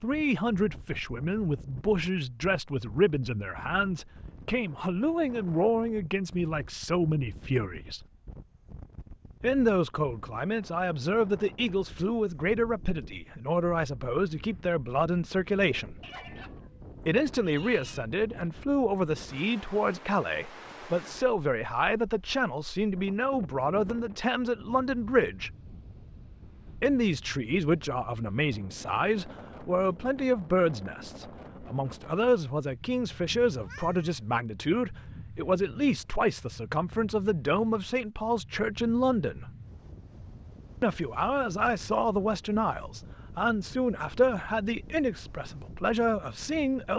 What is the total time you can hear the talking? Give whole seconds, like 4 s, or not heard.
42 s.